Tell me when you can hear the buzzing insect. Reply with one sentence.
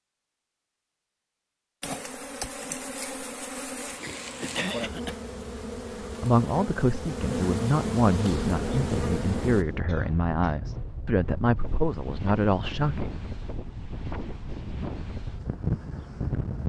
The buzzing insect can be heard from 1.8 to 9.7 s.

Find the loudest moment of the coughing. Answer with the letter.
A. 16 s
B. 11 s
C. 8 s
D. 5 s
D.